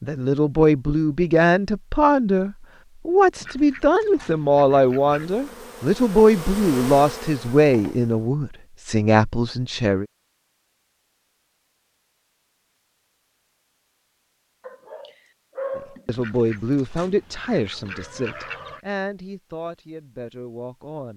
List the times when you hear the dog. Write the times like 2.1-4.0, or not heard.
14.6-16.1.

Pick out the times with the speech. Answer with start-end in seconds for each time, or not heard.
0.0-10.1, 15.8-21.1.